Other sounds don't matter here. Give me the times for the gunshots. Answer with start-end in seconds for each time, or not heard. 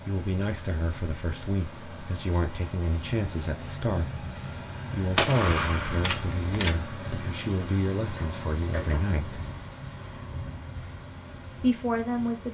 5.2-6.8.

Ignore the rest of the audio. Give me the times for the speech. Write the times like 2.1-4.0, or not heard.
0.1-4.2, 4.9-9.4, 11.6-12.4.